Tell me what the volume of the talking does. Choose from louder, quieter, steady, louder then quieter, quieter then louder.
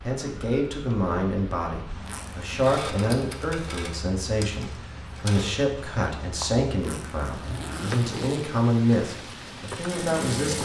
steady.